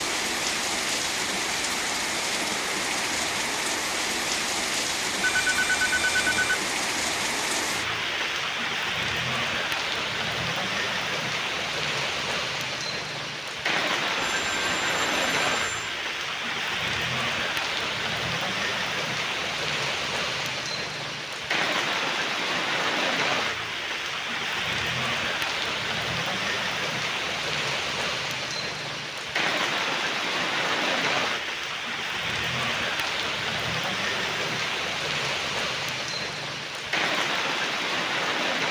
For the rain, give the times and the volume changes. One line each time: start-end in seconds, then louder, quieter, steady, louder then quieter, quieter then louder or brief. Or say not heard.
0.0-38.6 steady.